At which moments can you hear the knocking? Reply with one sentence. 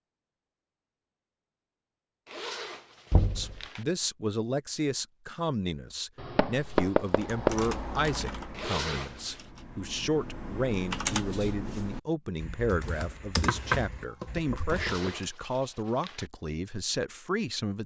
The knocking can be heard from 3.1 to 3.6 s, from 6.2 to 7.7 s and from 13.4 to 15.1 s.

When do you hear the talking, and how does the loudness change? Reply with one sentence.
The talking can be heard from 3.4 to 17.8 s, at a steady volume.